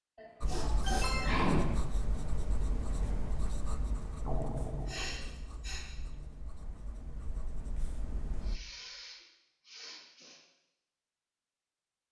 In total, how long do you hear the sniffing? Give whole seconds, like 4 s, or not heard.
5 s.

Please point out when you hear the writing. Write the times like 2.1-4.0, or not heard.
0.4-8.6.